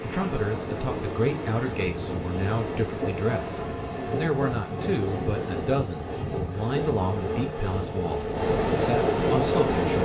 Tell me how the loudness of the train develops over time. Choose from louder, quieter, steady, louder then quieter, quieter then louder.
louder.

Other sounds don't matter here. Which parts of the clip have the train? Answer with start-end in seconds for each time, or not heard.
0.0-10.0.